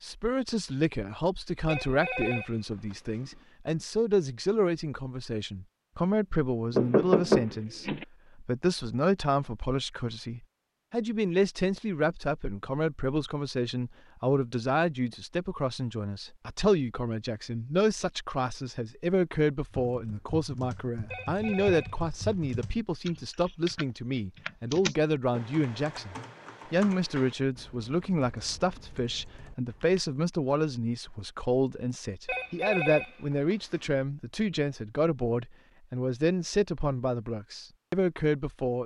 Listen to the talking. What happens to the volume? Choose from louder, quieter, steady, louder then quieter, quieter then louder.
steady.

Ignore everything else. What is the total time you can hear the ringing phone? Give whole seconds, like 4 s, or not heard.
5 s.